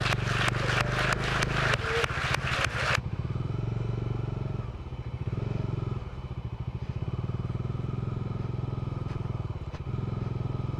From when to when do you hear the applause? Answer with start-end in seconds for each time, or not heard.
0.0-3.0.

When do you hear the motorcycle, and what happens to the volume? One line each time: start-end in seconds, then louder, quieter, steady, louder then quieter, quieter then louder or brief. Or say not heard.
0.0-10.7 steady.